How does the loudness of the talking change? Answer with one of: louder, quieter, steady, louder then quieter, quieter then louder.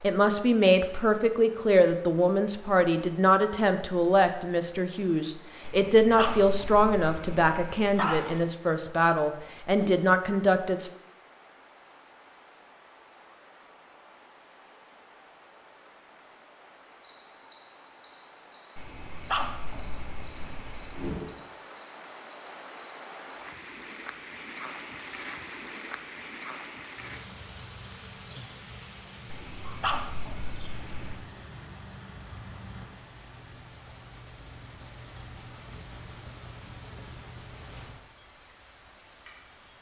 steady.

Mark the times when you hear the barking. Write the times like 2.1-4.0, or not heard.
5.6-8.5, 18.8-21.1, 29.2-31.2.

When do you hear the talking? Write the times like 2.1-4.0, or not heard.
0.0-10.9.